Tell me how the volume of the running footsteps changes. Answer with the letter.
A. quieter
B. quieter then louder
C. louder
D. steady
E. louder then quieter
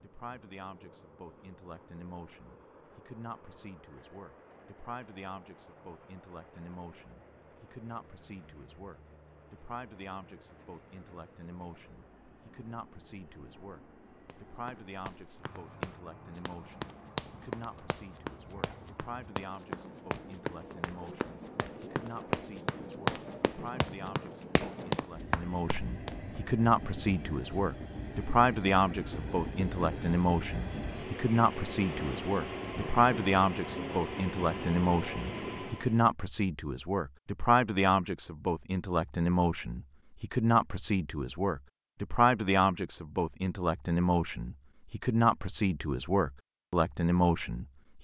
C.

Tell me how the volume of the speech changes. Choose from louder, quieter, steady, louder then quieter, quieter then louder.
louder.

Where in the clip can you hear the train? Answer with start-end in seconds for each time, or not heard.
0.0-36.0.